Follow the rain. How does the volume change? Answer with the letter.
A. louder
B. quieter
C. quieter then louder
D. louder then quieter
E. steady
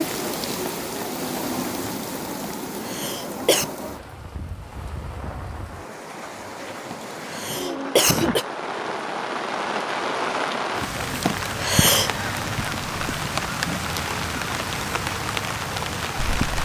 C.